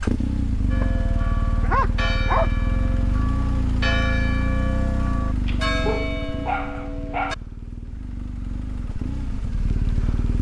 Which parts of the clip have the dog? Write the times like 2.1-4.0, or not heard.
1.6-2.5, 5.5-7.3.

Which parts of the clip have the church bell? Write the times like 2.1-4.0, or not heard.
0.7-7.3.